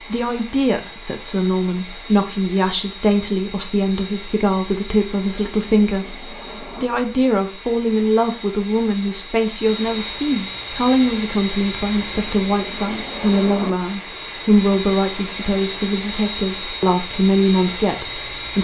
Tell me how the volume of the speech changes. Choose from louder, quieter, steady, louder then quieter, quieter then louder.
steady.